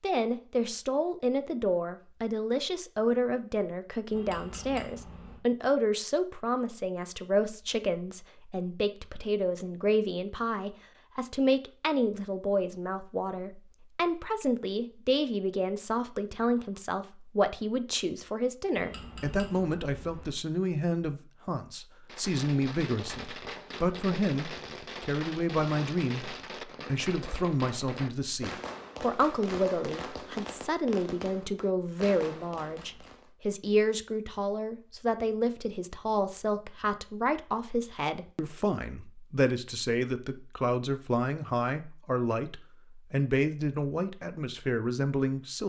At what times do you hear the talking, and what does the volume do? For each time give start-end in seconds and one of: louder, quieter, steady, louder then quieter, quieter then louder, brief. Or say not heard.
0.0-45.6 steady.